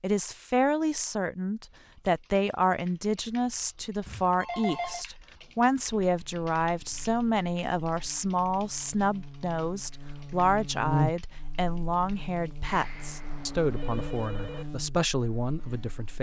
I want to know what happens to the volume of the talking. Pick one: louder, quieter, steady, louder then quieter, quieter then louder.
steady.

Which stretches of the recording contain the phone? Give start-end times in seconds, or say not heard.
4.0-5.0, 12.6-14.7.